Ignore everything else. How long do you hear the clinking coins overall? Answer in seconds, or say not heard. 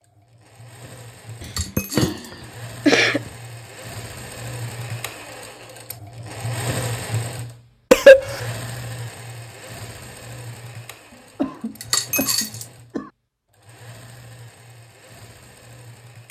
2 s.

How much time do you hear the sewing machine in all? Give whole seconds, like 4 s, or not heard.
16 s.